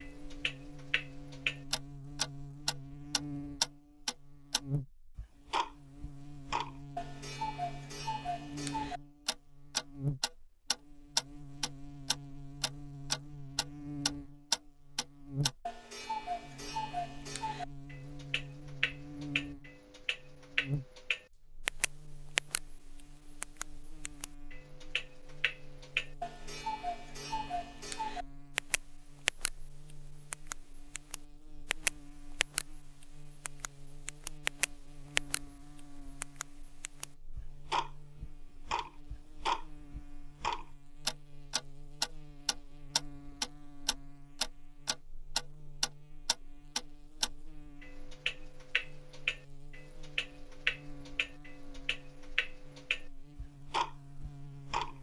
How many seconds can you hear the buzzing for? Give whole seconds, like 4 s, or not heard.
55 s.